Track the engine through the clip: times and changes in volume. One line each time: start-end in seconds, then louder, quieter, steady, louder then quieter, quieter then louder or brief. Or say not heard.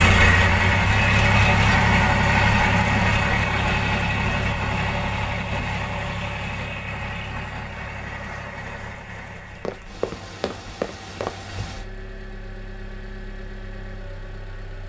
0.0-14.8 quieter.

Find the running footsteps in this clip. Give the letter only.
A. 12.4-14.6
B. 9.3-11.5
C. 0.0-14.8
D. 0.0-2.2
B.